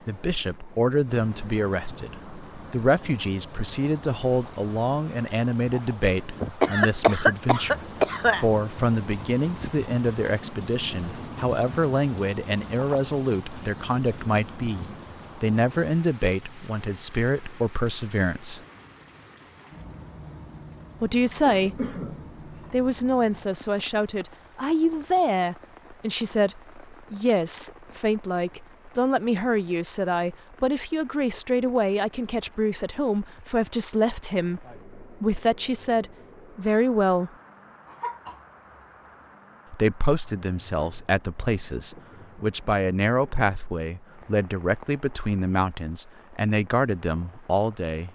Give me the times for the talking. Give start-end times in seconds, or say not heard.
0.1-18.6, 21.0-21.9, 22.7-37.3, 39.7-48.1.